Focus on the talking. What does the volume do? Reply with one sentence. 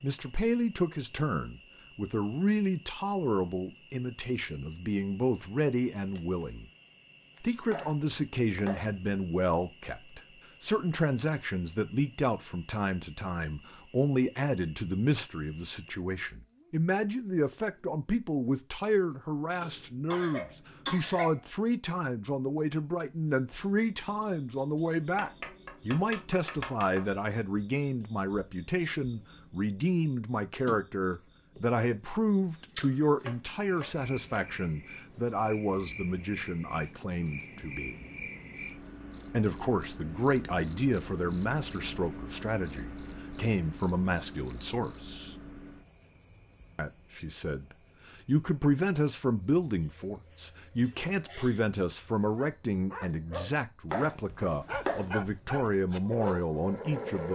The loudness of the talking stays about the same.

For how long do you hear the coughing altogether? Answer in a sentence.
You can hear the coughing for 3 seconds altogether.